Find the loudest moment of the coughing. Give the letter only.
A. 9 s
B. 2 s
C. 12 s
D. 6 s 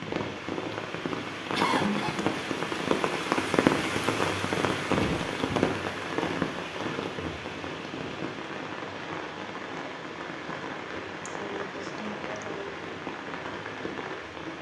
B.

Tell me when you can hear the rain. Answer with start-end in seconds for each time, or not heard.
0.0-14.5.